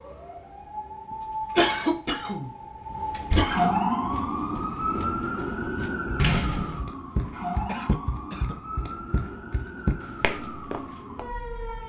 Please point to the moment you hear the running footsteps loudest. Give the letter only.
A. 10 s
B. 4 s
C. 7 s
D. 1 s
A.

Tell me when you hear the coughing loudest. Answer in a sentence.
The loudest moment of the coughing is at 2 seconds.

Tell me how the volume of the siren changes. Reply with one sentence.
The loudness of the siren goes up, then down.